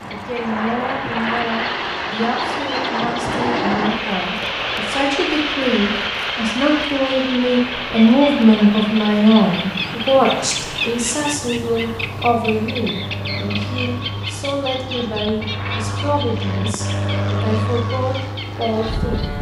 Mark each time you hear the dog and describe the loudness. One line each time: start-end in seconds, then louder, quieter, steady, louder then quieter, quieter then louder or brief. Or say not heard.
not heard.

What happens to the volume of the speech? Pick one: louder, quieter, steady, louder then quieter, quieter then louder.
louder then quieter.